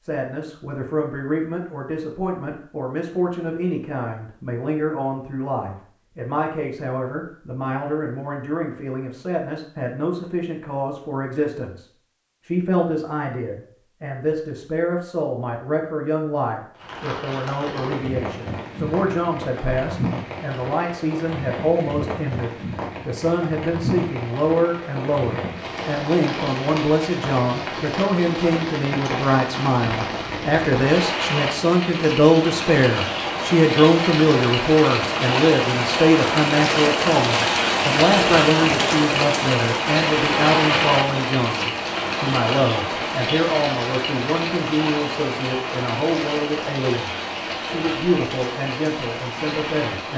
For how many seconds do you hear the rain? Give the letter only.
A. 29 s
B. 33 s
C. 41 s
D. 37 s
B.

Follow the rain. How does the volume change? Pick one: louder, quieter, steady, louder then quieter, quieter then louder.
louder then quieter.